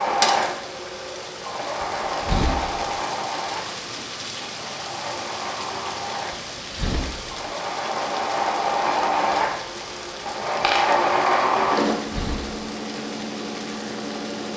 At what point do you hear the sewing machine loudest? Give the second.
11 s.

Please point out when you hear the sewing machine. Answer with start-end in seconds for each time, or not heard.
0.0-14.5.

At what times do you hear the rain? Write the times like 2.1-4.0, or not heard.
0.0-14.5.